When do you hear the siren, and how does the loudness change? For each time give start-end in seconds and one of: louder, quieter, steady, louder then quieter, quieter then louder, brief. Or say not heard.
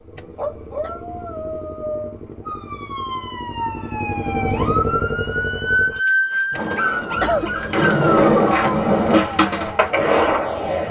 2.5-10.8 louder then quieter.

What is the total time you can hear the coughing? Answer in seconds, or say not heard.
2 s.